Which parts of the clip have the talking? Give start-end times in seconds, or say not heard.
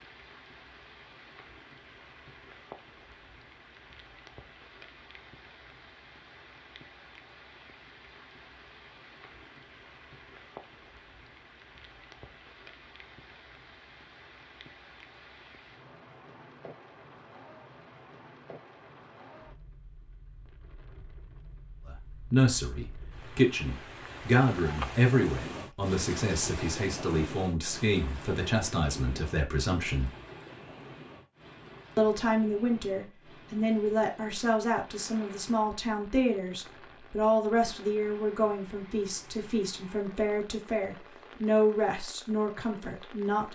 21.9-30.1, 31.9-43.5.